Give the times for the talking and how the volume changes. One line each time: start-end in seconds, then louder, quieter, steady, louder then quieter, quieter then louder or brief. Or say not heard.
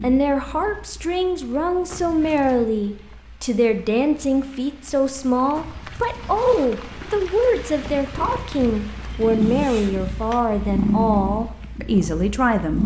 0.0-12.8 steady.